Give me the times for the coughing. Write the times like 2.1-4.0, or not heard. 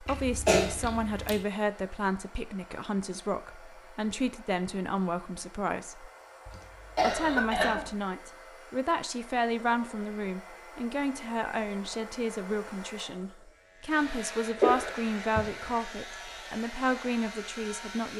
0.1-1.4, 6.5-7.8, 14.6-15.5.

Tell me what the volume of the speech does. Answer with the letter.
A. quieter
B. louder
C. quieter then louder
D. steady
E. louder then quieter
D.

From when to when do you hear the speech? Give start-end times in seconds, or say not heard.
0.0-6.1, 7.0-18.1.